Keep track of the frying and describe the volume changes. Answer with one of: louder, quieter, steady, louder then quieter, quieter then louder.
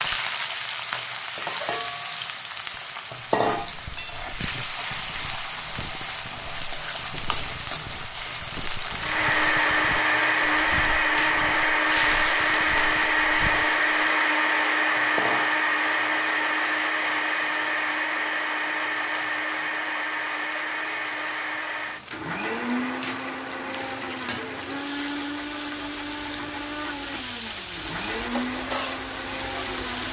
quieter then louder.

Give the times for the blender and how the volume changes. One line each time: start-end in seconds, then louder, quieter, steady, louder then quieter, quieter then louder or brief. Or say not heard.
8.9-30.0 quieter.